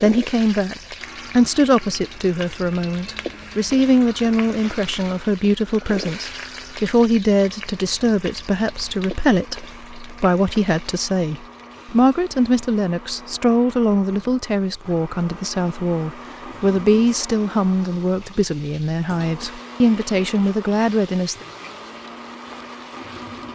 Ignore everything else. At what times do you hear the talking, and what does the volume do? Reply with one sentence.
The talking can be heard from 0.0 to 21.4 s, at a steady volume.